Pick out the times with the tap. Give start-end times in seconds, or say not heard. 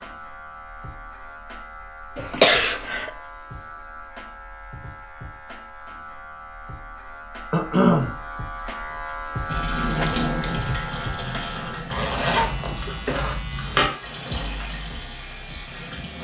9.4-12.4, 14.0-16.1.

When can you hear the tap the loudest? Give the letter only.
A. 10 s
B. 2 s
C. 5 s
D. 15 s
A.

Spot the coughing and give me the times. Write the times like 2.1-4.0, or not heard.
2.1-3.1, 7.5-8.2, 12.3-13.3.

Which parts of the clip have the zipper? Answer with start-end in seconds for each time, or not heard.
11.9-13.9.